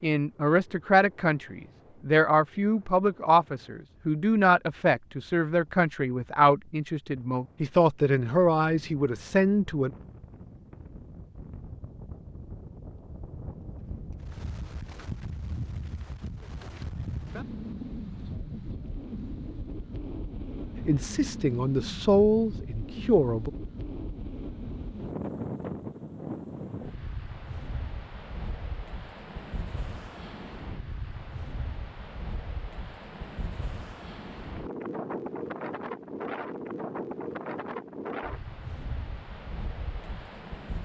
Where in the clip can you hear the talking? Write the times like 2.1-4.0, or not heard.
0.0-9.9, 20.9-23.5.